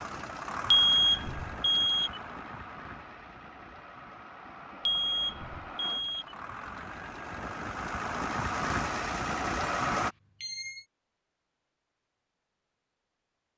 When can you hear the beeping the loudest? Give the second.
1 s.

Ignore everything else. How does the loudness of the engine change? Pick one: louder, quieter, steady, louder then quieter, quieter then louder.
quieter then louder.